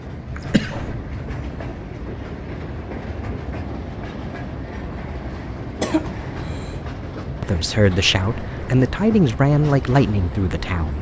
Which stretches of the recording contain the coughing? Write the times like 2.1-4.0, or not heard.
0.3-0.9, 5.8-6.8.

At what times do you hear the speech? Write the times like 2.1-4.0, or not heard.
7.4-10.9.